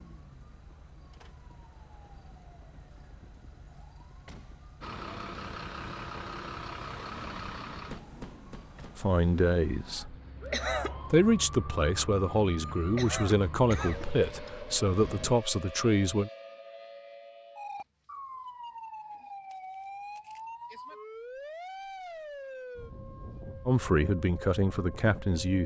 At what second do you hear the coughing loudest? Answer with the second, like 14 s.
11 s.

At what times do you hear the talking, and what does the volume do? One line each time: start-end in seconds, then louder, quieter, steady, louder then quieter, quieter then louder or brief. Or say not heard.
8.9-10.2 brief
11.1-16.3 steady
23.6-25.6 brief.